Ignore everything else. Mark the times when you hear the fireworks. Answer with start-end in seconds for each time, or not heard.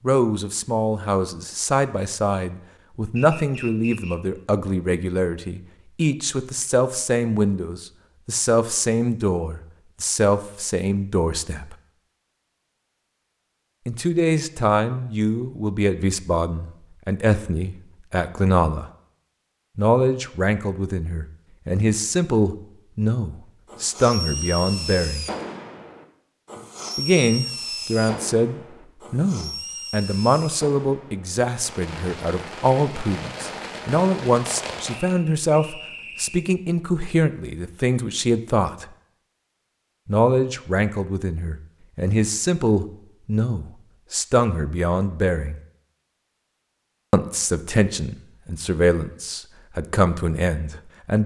23.6-35.1.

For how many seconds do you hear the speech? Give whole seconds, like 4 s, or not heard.
44 s.